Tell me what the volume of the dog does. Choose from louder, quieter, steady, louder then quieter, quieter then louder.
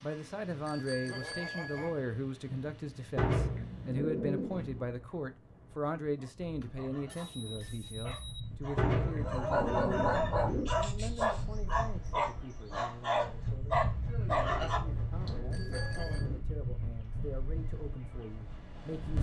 louder.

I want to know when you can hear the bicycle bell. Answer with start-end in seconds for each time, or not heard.
0.7-2.0, 6.4-8.4, 15.5-16.3.